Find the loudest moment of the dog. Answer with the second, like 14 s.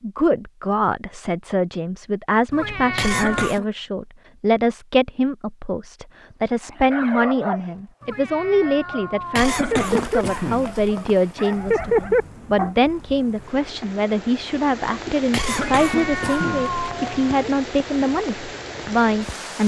12 s.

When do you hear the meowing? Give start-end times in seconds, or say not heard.
2.5-3.5, 8.0-9.8, 15.5-17.5.